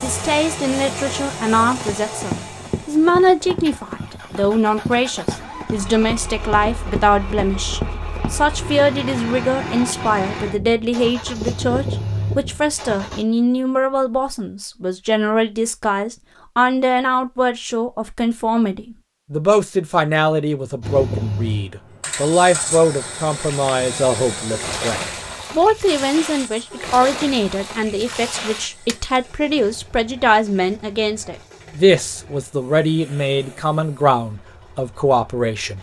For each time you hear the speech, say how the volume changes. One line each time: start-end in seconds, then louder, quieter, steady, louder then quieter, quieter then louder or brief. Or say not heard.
0.0-35.7 steady.